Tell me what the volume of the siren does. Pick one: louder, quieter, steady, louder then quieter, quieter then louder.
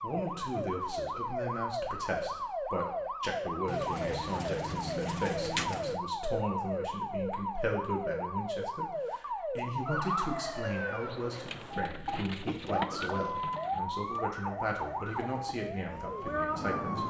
steady.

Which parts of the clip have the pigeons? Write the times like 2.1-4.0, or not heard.
3.6-6.0, 11.1-13.8.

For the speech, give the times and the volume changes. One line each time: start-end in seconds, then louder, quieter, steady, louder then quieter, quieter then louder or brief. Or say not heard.
0.0-17.0 steady.